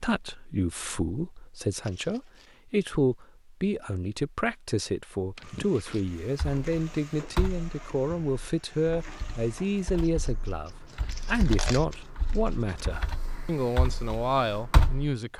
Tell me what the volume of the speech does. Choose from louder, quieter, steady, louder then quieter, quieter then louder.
steady.